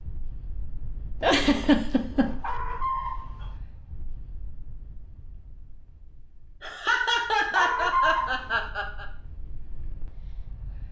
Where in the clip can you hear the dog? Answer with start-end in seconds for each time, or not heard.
2.4-3.5, 7.5-8.7.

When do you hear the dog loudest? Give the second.
8 s.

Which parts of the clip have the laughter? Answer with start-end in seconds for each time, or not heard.
1.2-2.4, 6.6-9.1.